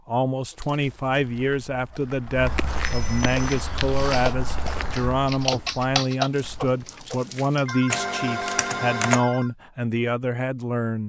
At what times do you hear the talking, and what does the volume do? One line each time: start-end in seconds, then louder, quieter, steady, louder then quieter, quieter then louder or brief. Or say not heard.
0.1-11.0 steady.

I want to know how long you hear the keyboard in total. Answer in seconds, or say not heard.
6 s.